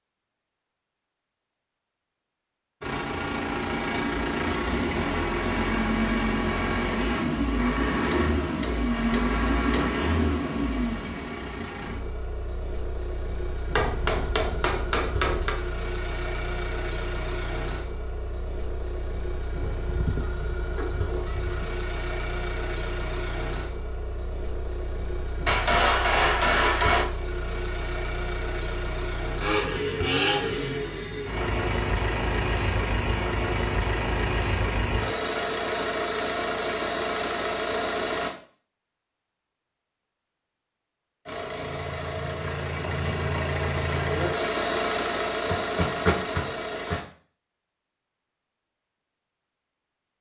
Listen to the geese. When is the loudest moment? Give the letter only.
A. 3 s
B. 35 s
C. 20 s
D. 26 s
C.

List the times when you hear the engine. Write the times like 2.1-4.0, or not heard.
2.8-38.3, 41.2-47.0.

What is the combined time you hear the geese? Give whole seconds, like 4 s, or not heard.
2 s.